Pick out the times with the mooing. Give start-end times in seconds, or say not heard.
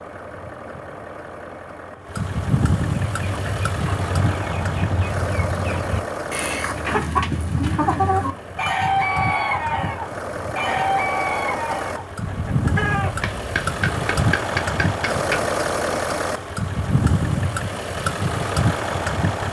not heard.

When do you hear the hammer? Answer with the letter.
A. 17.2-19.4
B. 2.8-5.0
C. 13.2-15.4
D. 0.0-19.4
C.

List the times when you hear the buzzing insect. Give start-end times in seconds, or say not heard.
not heard.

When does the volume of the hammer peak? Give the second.
14 s.